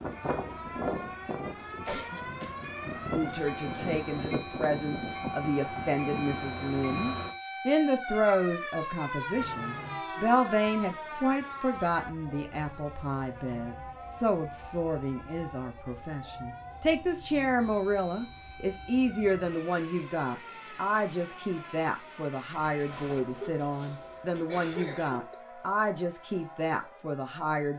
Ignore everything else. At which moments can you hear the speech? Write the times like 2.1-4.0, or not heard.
3.1-27.7.